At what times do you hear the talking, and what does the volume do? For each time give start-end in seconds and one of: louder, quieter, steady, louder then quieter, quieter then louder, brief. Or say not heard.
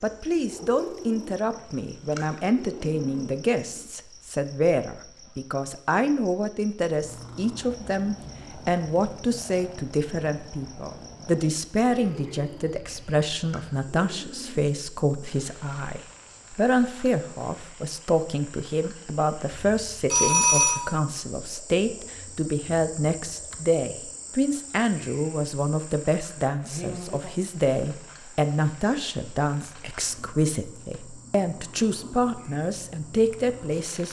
0.0-34.0 steady.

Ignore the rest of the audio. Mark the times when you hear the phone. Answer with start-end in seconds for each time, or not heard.
19.6-20.8.